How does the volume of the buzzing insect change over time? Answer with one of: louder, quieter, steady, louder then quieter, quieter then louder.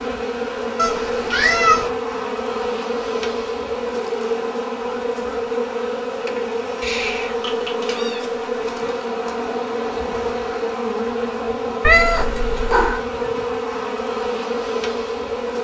steady.